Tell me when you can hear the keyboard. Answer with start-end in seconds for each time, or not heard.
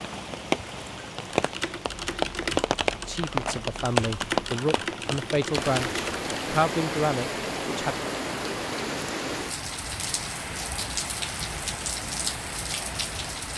1.3-6.3.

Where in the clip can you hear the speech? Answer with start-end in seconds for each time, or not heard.
3.0-8.0.